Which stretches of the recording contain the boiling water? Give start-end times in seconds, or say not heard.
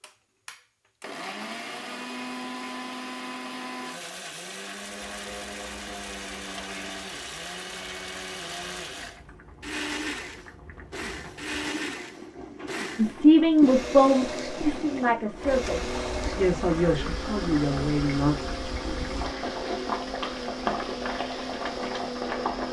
5.0-22.6.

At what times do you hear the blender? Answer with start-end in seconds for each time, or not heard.
0.0-22.6.